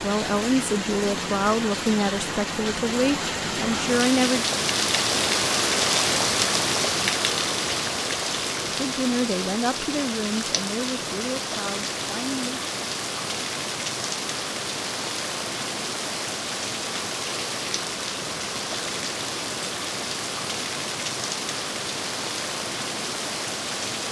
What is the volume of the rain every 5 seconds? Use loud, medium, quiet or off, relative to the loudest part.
loud, loud, medium, medium, medium.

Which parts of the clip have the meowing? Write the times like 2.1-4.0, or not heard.
not heard.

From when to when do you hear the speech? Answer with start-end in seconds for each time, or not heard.
0.0-4.5, 8.8-12.7.